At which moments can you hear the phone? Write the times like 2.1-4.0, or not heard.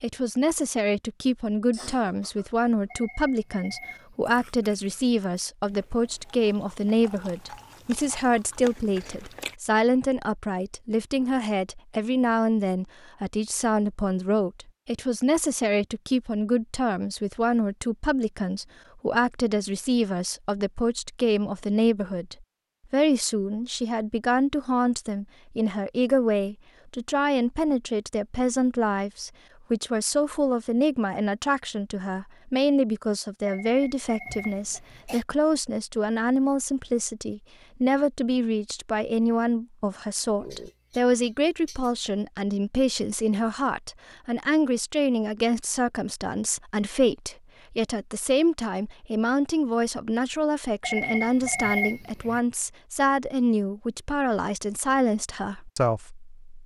2.9-4.3, 33.5-34.9, 50.8-52.4.